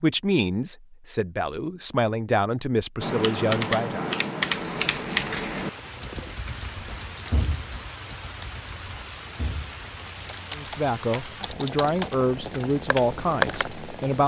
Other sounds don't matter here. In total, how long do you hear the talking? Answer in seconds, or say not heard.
8 s.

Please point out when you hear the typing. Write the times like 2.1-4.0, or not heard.
3.0-13.7.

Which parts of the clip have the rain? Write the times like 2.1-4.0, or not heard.
4.5-14.2.